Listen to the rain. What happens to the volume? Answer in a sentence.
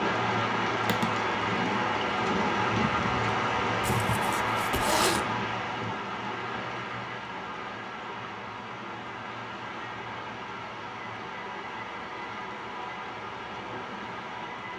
The volume of the rain goes down.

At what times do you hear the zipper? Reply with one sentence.
The zipper can be heard from 3.8 to 5.2 s.